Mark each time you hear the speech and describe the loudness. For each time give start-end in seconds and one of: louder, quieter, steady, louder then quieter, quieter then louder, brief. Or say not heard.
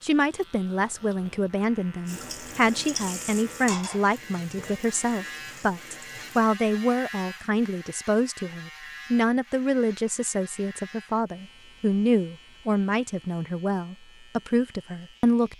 0.0-15.5 steady.